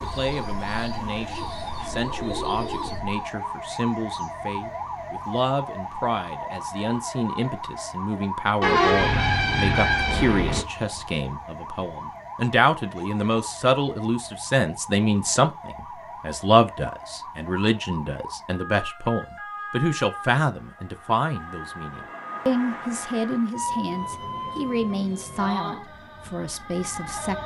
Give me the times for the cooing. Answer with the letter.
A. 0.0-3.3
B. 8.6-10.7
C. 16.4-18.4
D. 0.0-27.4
A.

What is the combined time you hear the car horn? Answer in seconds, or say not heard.
2 s.